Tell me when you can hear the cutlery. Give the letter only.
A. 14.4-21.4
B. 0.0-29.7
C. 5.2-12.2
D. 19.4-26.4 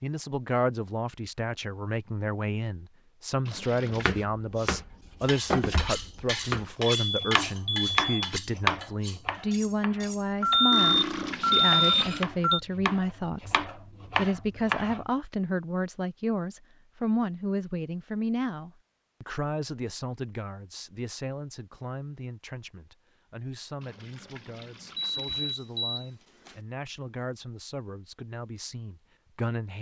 C.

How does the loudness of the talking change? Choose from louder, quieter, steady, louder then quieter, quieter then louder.
quieter.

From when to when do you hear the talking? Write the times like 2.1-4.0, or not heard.
0.0-29.7.